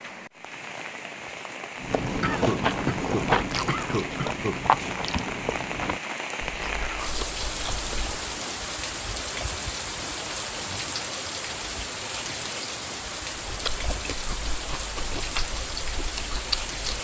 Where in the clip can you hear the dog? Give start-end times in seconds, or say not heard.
not heard.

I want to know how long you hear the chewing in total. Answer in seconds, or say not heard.
10 s.